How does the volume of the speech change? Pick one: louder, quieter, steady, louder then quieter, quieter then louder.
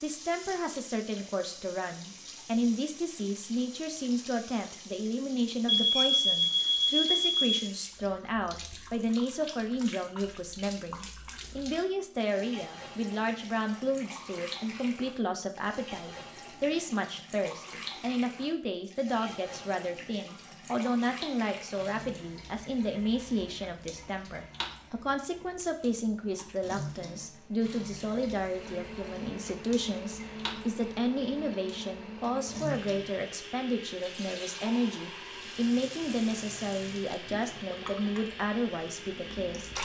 steady.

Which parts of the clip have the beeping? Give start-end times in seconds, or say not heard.
5.7-7.5.